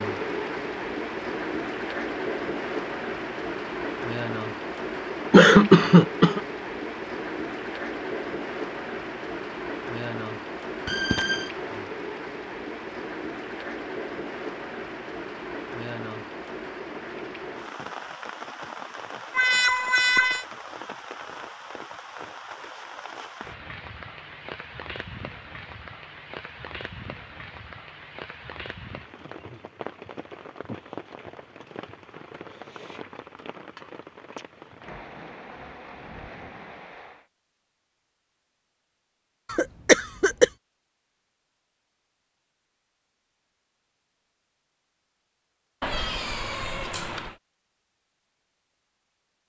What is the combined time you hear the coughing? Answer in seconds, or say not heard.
2 s.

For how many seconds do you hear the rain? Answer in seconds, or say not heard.
37 s.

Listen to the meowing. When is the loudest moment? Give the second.
20 s.